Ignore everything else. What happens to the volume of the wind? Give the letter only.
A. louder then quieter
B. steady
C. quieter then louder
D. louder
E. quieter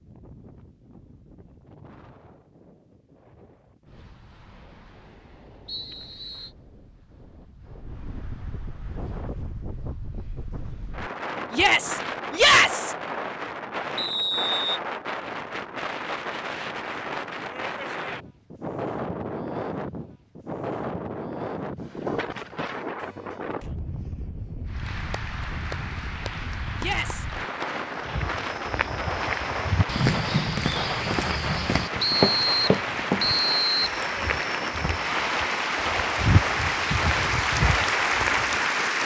D.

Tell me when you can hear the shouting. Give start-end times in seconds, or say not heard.
11.5-12.9, 26.8-27.2.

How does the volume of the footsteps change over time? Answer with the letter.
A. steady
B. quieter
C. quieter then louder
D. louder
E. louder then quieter
C.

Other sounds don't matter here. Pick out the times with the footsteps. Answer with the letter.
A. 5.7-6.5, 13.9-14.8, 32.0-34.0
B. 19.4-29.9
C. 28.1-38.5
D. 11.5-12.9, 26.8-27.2
C.